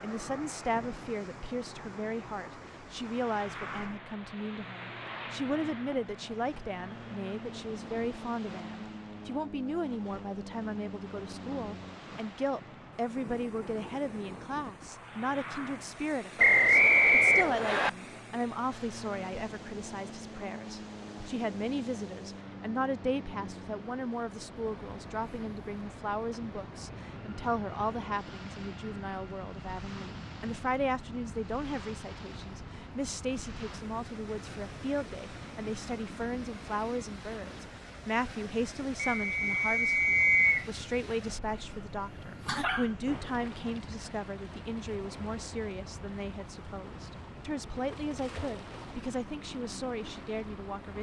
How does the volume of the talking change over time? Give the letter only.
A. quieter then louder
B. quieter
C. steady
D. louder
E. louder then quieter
C.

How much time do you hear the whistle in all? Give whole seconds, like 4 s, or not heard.
3 s.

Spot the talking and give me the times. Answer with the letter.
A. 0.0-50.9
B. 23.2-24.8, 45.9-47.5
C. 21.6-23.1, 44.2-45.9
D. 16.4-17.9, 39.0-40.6
A.